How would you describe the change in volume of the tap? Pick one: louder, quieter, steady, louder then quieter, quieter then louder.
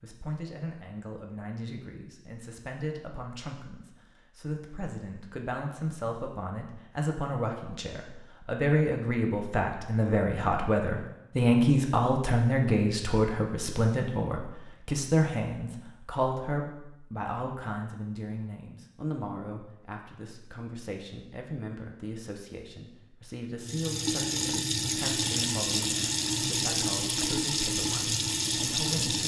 steady.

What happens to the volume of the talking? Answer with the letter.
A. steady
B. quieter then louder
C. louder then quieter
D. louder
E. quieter
C.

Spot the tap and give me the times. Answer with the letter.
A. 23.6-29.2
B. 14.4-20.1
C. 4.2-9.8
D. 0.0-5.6
A.